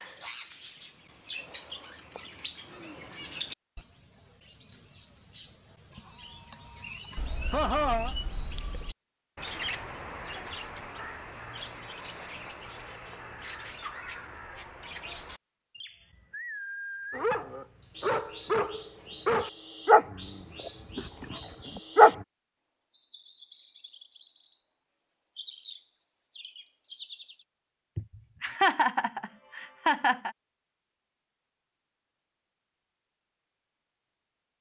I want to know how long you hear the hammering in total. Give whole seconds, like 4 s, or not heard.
not heard.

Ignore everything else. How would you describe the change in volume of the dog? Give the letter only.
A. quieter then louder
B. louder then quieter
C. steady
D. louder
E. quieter
B.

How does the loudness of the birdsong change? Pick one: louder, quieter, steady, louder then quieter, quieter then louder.
louder then quieter.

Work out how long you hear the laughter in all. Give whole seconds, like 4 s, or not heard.
3 s.